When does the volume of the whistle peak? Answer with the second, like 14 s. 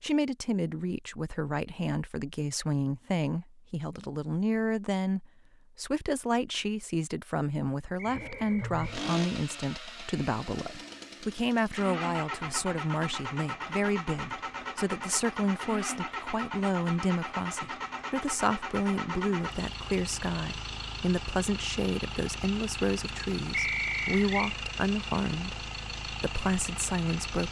24 s.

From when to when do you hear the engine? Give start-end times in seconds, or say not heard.
8.1-27.4.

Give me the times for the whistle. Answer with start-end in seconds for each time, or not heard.
8.0-8.8, 23.5-24.6.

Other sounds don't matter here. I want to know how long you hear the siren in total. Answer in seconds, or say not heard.
not heard.